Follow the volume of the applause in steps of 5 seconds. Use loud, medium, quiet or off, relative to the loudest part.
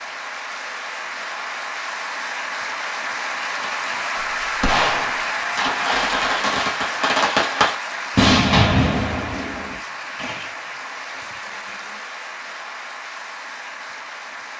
loud, loud, medium.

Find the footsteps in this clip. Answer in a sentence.
You can't hear the footsteps here.